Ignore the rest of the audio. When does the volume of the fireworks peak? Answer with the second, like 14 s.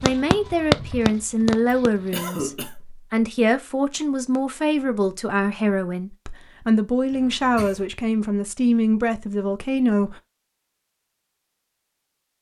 1 s.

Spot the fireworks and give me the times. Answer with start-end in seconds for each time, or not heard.
0.0-2.2.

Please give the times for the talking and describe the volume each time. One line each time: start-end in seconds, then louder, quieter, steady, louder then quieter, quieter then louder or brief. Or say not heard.
0.0-10.2 steady.